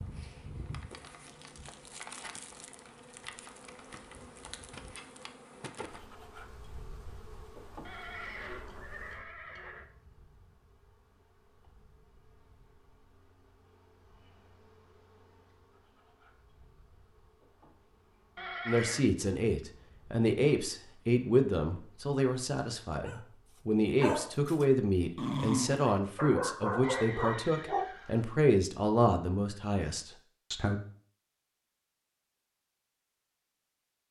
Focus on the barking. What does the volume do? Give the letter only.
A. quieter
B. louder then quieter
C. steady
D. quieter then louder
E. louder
D.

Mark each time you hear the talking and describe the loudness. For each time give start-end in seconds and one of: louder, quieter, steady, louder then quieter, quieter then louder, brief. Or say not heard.
18.6-30.8 steady.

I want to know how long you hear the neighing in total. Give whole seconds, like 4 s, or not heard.
4 s.